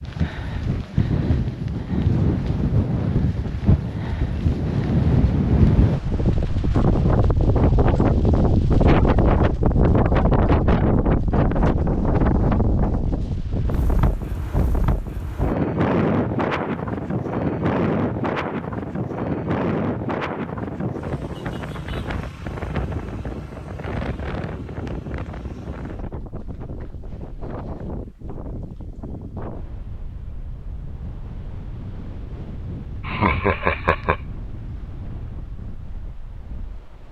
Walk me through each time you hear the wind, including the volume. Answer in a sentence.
The wind can be heard from 0.0 to 37.0 s, getting quieter.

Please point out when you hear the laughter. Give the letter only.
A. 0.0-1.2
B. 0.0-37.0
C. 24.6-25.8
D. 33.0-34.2
D.